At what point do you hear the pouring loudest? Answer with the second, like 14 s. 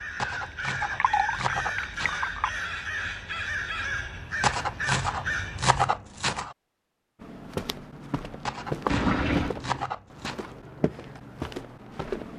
9 s.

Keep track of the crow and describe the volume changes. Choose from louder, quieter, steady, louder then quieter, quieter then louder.
steady.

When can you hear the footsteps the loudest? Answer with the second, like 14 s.
9 s.